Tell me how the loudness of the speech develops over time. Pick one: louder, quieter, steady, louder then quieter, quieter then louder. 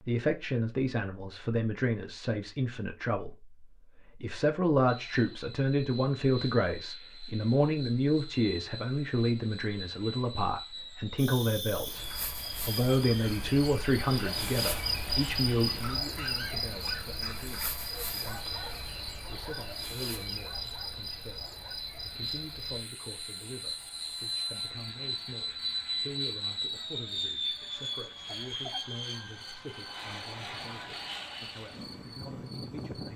quieter.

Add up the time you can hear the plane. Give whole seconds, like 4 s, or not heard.
28 s.